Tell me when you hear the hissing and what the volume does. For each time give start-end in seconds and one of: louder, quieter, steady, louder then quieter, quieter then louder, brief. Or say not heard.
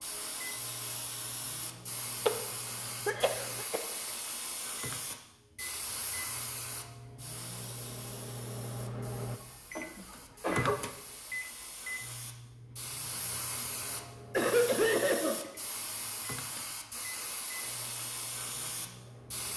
0.0-19.5 quieter then louder.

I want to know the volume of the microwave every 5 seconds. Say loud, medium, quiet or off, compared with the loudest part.
medium, loud, loud, medium.